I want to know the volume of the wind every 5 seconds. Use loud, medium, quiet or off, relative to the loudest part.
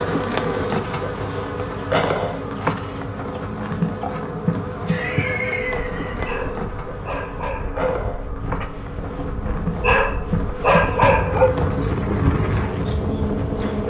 medium, medium, loud.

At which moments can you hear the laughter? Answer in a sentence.
You can hear the laughter from 4.8 to 6.3 s.